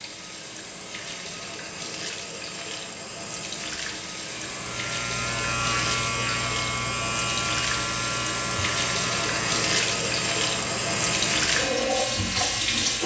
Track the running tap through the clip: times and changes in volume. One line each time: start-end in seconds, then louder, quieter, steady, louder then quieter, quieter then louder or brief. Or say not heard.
0.0-13.0 louder.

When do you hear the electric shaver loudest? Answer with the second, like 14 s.
6 s.